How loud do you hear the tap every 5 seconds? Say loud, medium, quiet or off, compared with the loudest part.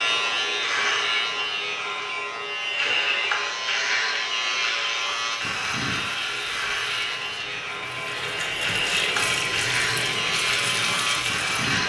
off, loud, loud.